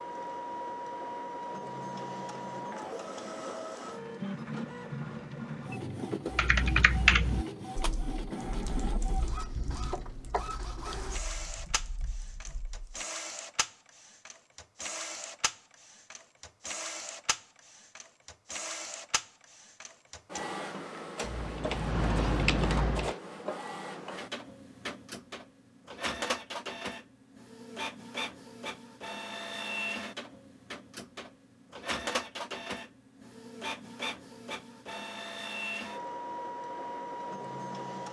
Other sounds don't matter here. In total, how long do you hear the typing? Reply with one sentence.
The typing can be heard for 9 seconds in total.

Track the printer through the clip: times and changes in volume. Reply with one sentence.
The printer can be heard from 0.0 to 38.0 s, at a steady volume.